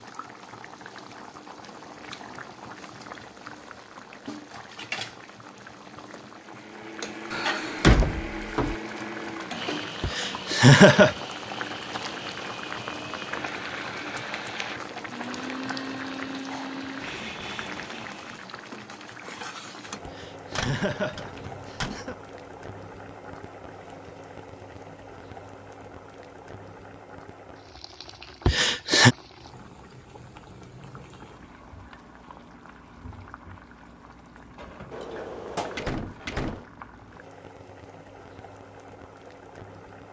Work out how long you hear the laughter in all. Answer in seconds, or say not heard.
4 s.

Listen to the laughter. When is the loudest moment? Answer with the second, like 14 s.
11 s.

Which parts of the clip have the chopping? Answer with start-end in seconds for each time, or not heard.
not heard.